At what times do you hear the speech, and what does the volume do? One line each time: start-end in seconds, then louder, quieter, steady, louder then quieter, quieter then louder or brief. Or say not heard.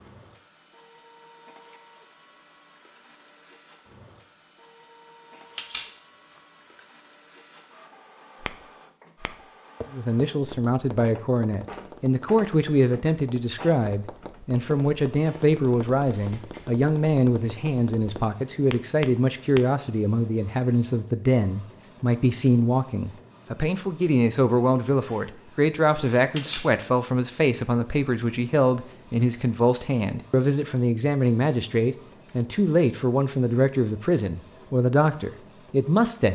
9.9-36.3 steady.